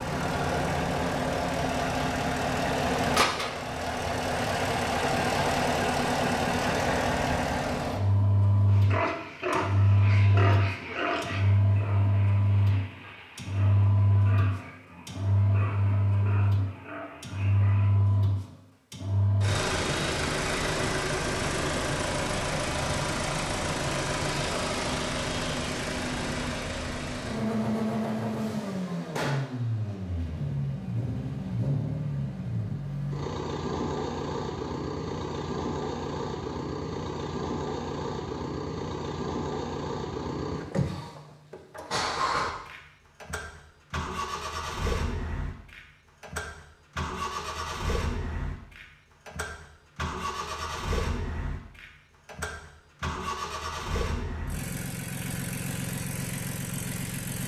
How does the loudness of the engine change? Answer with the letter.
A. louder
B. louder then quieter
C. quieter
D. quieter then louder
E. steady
C.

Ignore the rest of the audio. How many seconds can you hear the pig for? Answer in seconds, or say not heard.
9 s.